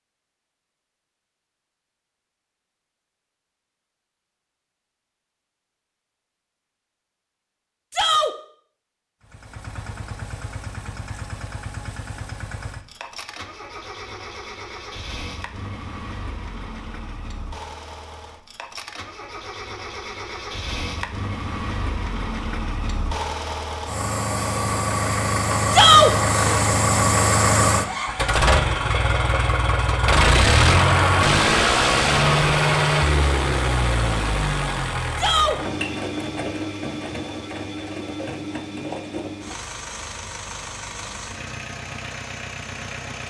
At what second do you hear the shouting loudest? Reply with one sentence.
The loudest moment of the shouting is at 26 seconds.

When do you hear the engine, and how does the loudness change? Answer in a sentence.
The engine can be heard from 9.2 to 43.2 s, getting louder then quieter.